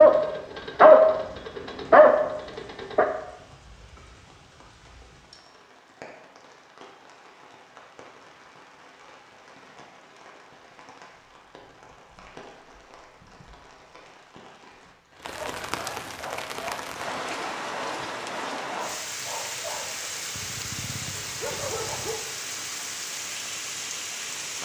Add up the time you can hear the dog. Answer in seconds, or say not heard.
10 s.